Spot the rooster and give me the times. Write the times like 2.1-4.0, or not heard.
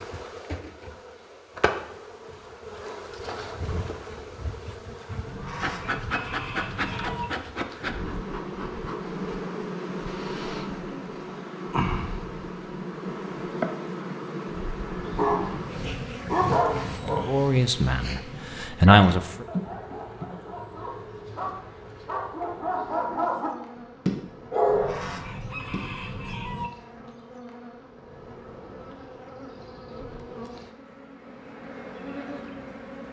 5.2-7.3, 24.6-26.7.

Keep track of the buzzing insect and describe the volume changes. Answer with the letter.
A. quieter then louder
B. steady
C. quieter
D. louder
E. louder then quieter
C.